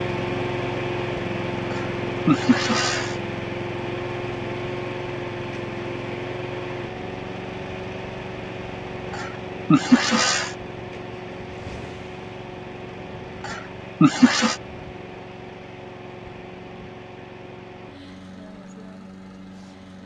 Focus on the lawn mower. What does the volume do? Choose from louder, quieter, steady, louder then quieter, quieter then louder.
quieter.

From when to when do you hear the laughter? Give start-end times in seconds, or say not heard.
1.7-3.1, 9.1-10.6, 13.4-14.6.